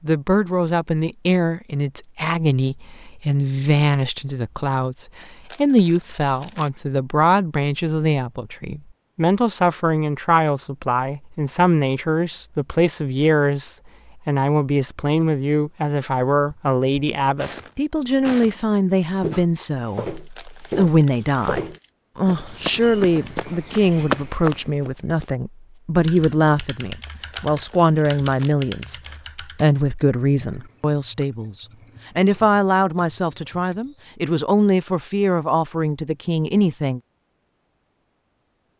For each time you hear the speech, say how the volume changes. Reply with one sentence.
You can hear the speech from 0.0 to 37.0 s, at a steady volume.